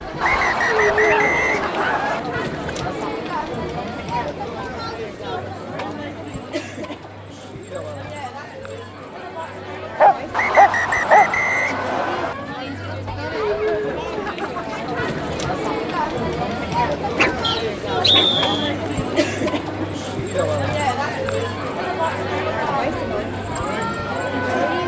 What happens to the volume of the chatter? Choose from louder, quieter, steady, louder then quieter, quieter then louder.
quieter then louder.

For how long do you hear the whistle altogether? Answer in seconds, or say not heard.
5 s.